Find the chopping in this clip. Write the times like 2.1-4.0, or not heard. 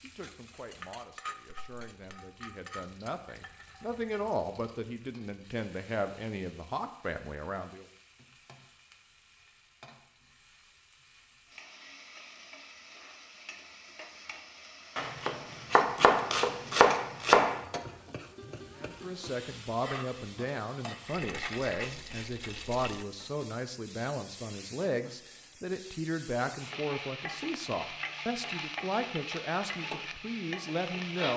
14.9-17.6.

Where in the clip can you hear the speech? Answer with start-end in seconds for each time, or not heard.
0.0-7.8, 18.8-31.3.